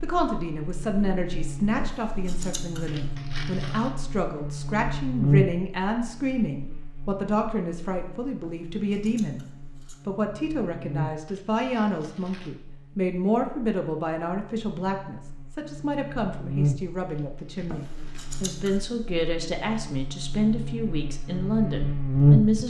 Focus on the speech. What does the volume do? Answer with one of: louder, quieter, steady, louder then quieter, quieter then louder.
steady.